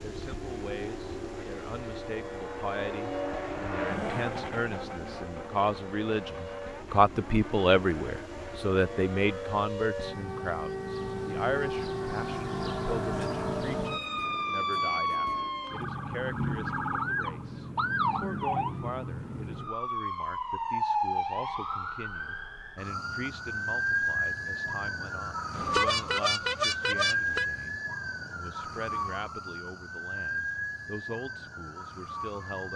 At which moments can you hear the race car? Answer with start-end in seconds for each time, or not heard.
0.0-9.7.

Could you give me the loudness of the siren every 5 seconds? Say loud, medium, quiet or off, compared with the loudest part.
medium, medium, loud, loud, loud, loud, medium.